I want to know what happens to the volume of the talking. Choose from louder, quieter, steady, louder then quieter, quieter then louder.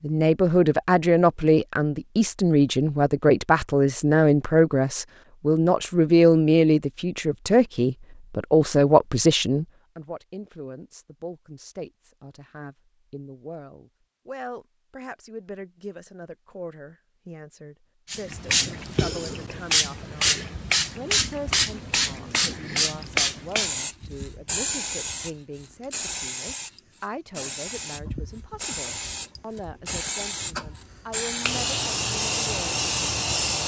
quieter.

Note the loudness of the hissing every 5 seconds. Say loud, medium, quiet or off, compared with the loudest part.
off, off, off, loud, loud, medium, loud.